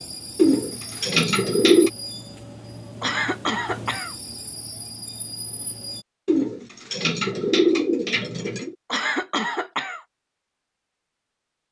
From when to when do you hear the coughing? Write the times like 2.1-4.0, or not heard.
3.0-4.2, 8.9-10.1.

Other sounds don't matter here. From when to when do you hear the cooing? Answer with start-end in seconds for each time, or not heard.
0.3-1.9, 6.2-8.8.